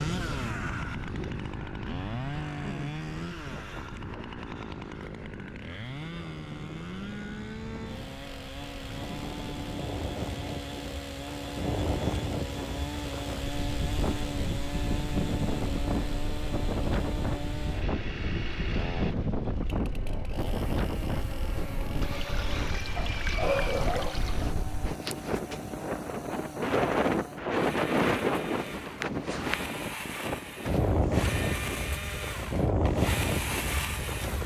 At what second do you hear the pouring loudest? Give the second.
23 s.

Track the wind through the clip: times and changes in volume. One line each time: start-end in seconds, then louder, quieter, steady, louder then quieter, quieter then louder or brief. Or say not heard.
0.0-34.4 louder.